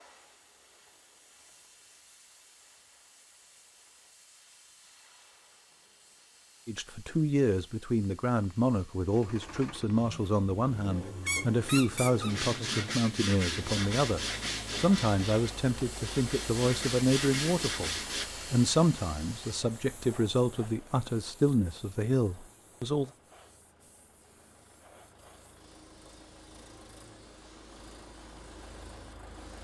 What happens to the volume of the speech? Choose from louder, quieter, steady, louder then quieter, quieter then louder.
steady.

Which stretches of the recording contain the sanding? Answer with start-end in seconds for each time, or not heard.
12.2-18.2.